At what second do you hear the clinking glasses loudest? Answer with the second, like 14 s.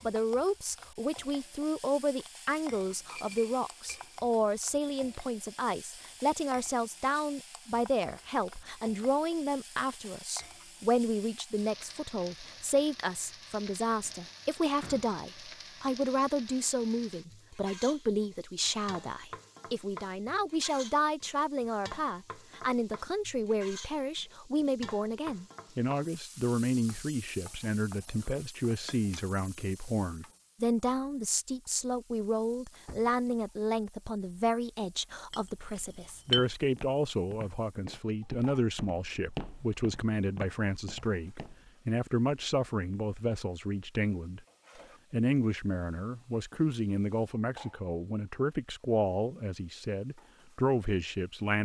36 s.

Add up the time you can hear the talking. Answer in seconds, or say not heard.
51 s.